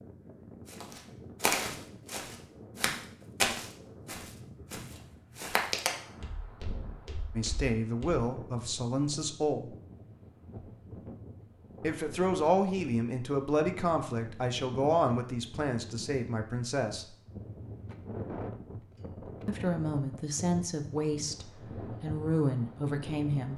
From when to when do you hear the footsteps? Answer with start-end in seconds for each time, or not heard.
0.7-8.2.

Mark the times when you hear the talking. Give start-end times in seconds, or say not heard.
7.3-9.8, 11.8-17.1, 19.4-23.5.